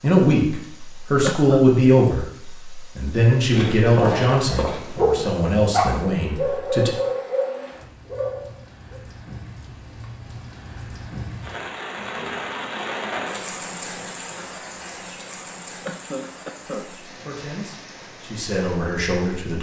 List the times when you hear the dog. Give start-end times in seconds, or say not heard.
3.4-9.0.